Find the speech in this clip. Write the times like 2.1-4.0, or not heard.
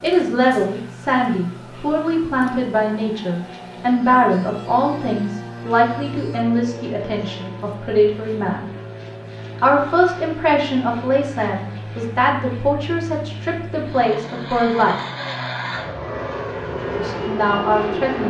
0.0-8.7, 9.6-14.9, 16.9-18.2.